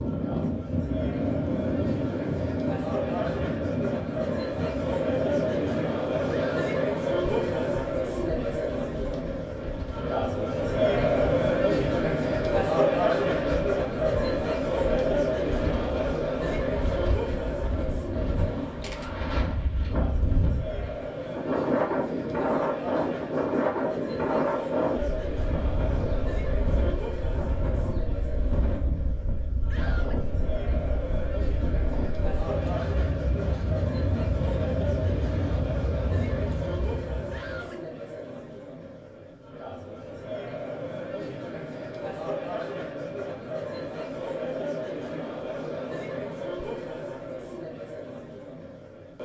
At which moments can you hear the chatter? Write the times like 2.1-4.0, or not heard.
0.0-49.2.